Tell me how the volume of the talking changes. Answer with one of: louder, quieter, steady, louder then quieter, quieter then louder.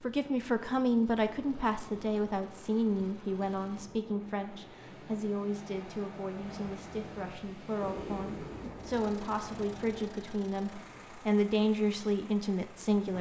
quieter then louder.